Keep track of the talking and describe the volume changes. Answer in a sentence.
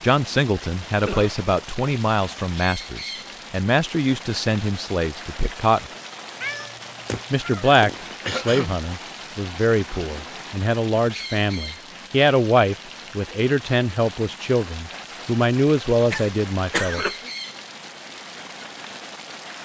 The volume of the talking stays about the same.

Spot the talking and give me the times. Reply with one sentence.
The talking can be heard from 0.0 to 5.8 s and from 7.3 to 17.1 s.